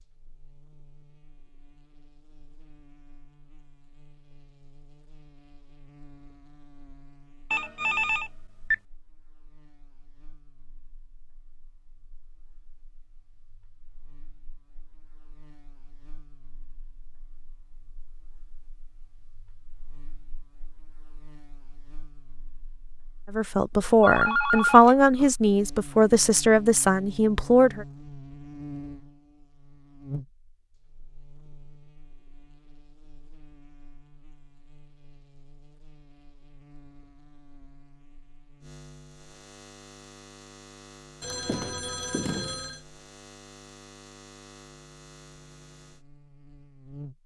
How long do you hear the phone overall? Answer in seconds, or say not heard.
4 s.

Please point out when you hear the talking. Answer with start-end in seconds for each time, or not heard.
23.3-27.9.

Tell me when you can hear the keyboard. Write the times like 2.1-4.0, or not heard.
not heard.